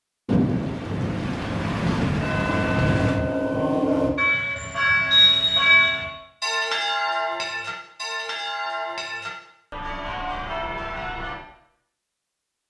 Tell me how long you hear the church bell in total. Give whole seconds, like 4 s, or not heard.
9 s.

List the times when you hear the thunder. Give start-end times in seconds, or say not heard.
0.2-3.2.